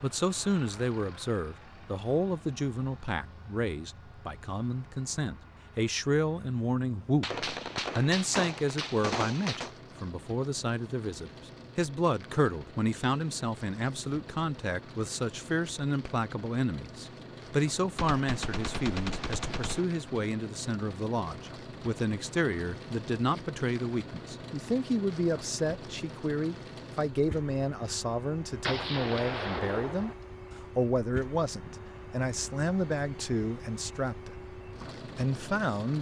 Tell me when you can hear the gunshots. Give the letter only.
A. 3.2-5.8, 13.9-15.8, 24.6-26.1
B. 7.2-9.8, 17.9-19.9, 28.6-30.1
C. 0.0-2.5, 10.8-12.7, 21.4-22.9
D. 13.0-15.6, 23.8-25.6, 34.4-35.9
B.